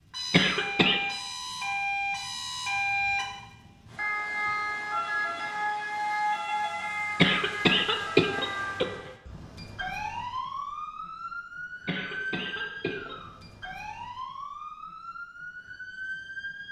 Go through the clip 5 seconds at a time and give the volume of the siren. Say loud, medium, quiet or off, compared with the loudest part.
loud, loud, medium, medium.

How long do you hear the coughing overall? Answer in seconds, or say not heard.
4 s.